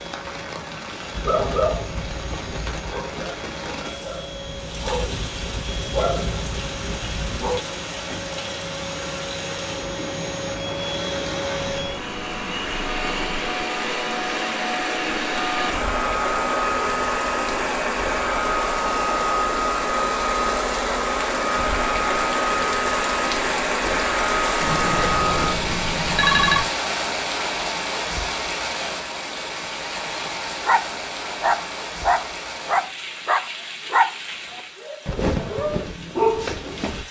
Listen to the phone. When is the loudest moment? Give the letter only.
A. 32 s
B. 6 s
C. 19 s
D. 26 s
D.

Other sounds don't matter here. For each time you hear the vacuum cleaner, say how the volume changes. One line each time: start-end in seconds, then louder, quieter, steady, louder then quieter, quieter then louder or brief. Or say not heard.
0.0-25.6 louder.